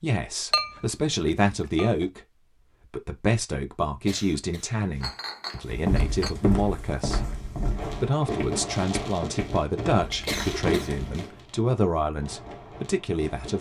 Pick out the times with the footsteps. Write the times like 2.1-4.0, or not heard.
5.7-11.1.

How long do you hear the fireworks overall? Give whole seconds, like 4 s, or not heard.
6 s.